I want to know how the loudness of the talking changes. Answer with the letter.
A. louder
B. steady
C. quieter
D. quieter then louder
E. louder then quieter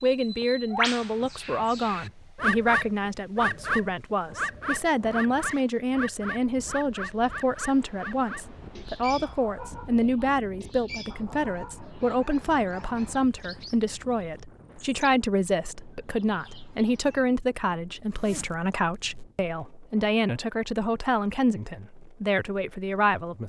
B.